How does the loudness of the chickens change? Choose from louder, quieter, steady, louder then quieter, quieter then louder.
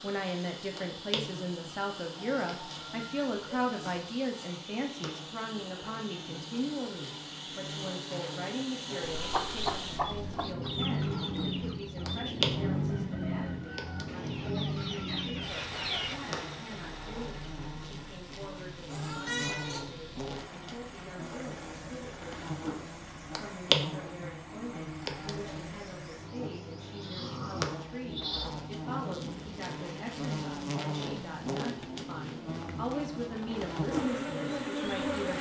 quieter then louder.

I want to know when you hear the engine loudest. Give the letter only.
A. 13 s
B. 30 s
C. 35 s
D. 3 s
A.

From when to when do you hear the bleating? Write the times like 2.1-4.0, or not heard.
2.1-4.0, 18.9-19.9, 26.9-28.4.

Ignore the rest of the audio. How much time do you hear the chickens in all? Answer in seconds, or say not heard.
7 s.